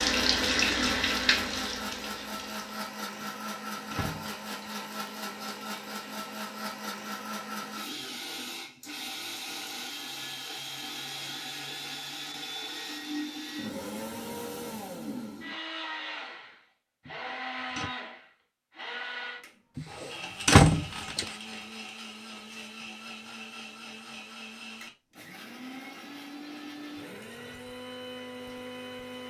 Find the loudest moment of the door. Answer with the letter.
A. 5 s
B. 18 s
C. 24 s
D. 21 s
D.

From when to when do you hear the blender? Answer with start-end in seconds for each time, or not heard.
0.0-29.2.